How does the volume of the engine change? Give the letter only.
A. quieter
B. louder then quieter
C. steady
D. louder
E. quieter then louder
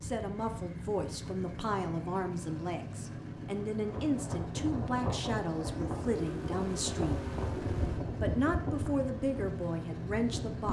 C.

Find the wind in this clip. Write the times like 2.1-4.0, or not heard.
3.8-10.6.